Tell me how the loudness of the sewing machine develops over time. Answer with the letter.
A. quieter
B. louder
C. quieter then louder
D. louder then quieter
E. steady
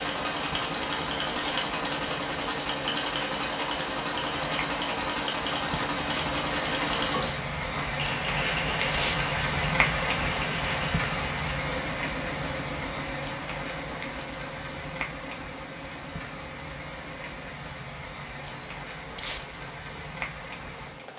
A.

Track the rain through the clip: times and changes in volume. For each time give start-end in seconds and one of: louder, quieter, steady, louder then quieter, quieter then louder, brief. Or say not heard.
0.0-21.1 louder then quieter.